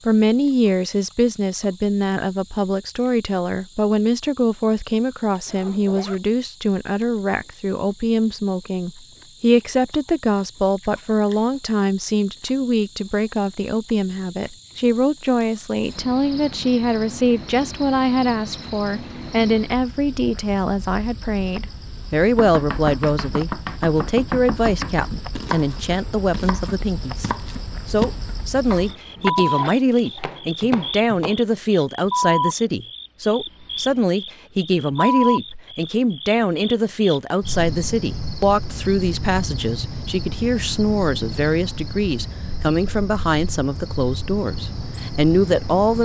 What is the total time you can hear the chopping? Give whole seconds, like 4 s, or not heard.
9 s.